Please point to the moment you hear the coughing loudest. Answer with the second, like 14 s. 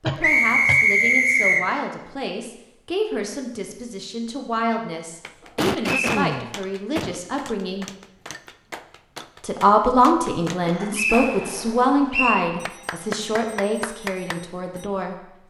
6 s.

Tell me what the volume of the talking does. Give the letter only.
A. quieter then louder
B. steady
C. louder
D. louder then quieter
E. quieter
D.